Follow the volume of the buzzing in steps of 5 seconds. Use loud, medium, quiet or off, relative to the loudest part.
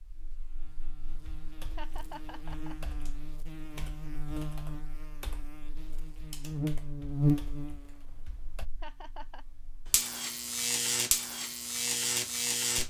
quiet, loud, loud.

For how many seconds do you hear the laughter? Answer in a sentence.
You can hear the laughter for 2 seconds altogether.